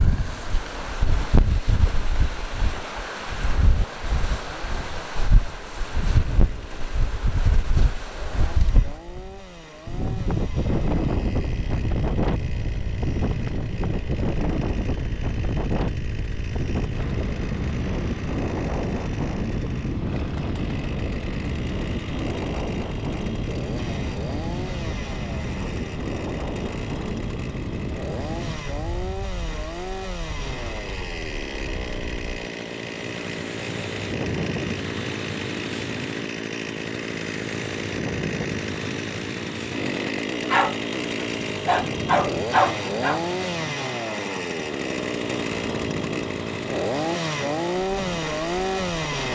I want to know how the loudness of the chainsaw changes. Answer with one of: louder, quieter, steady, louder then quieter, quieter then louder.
louder.